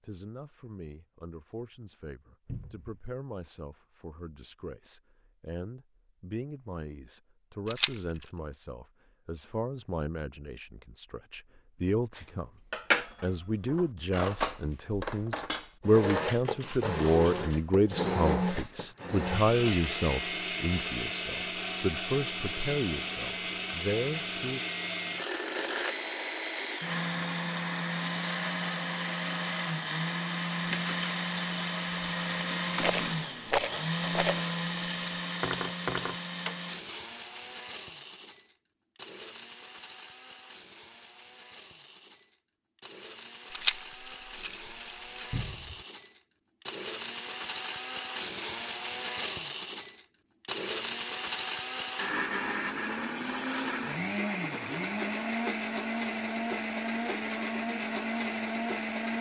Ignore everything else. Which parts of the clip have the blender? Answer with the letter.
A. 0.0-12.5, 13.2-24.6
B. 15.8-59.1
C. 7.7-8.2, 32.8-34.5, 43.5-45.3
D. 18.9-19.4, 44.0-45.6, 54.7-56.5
B.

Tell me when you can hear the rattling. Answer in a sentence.
The rattling can be heard from 7.7 to 8.2 s, from 32.8 to 34.5 s and from 43.5 to 45.3 s.